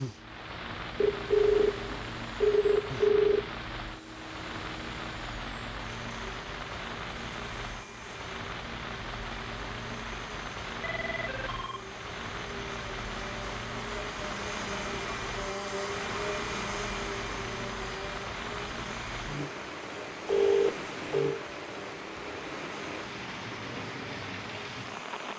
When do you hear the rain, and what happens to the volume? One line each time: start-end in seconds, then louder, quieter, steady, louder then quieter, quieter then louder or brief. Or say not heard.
0.0-25.3 steady.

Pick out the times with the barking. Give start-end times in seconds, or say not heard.
not heard.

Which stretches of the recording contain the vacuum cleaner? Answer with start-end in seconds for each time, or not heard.
0.0-25.3.